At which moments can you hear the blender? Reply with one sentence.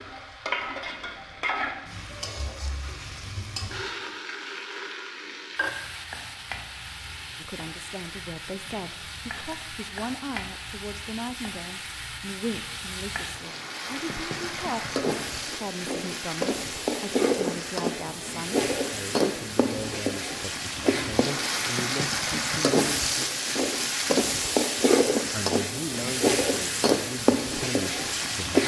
You can't hear the blender here.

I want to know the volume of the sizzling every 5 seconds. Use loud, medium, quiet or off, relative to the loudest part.
medium, quiet, medium, loud, loud, loud.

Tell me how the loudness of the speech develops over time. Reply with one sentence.
The volume of the speech stays about the same.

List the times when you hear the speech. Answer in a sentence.
You can hear the speech from 7.4 to 23.3 s and from 25.3 to 28.6 s.